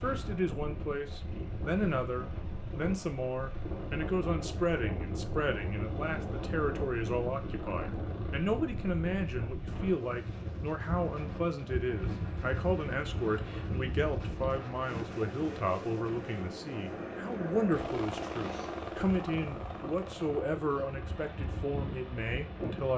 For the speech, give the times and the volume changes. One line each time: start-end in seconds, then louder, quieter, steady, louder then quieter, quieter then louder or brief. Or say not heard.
0.0-22.9 steady.